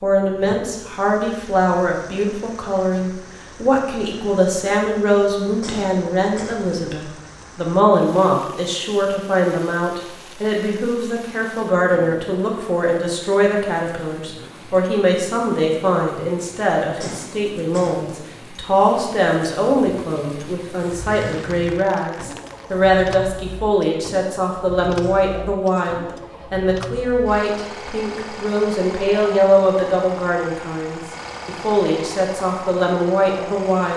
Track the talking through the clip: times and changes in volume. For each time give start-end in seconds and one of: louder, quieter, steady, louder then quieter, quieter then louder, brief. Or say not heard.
0.0-33.9 steady.